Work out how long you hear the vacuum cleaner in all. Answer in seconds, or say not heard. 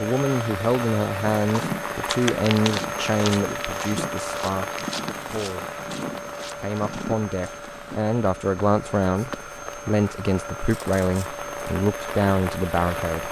13 s.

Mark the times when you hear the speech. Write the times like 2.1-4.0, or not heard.
0.0-5.8, 6.5-13.2.